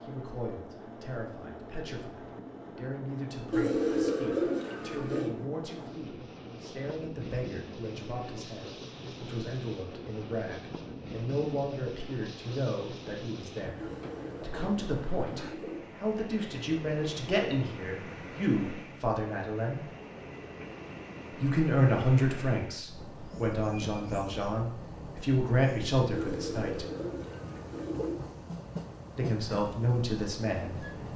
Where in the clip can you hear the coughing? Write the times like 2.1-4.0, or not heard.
not heard.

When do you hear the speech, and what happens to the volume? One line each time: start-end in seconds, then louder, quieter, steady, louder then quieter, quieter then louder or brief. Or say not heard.
0.0-19.8 louder
21.4-26.9 quieter then louder
29.1-30.8 brief.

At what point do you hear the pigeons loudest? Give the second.
4 s.